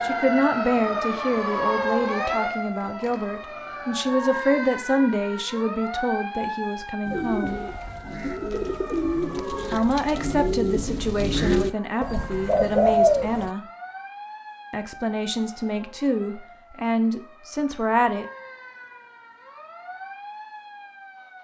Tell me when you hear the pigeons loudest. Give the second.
13 s.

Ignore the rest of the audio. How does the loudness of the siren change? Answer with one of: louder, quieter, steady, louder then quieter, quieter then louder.
quieter.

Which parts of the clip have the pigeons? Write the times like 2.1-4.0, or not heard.
7.0-13.5.